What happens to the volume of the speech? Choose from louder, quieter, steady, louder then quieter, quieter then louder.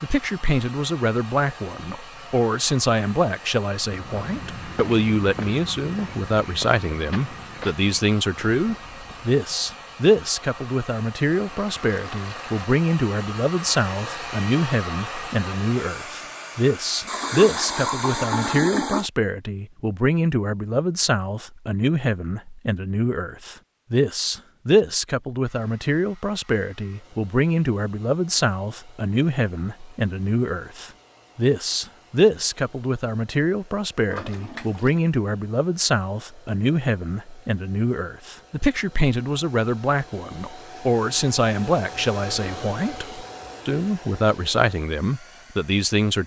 steady.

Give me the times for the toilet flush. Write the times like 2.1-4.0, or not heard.
11.3-12.7, 17.1-19.1, 34.0-35.0.